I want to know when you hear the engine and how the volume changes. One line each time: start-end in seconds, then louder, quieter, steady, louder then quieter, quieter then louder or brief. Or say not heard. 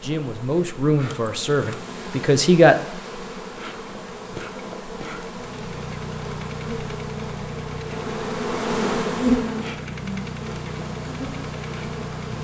5.3-12.3 quieter then louder.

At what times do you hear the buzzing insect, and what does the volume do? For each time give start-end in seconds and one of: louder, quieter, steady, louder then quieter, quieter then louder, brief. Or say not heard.
0.0-12.3 louder then quieter.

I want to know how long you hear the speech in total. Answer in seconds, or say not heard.
3 s.